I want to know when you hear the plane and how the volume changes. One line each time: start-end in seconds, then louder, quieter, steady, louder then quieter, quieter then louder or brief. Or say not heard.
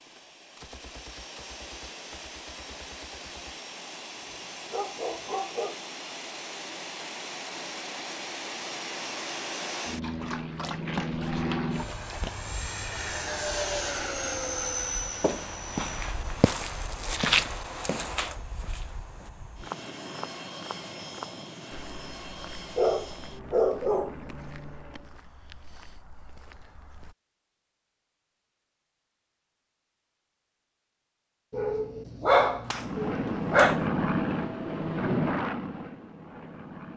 0.0-25.2 louder then quieter
32.7-36.9 quieter.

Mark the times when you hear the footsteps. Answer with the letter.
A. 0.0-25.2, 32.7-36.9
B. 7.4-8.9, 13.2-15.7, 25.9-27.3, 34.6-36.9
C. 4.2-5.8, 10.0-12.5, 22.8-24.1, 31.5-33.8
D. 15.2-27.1
D.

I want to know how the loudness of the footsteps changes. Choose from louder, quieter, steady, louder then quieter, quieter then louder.
quieter.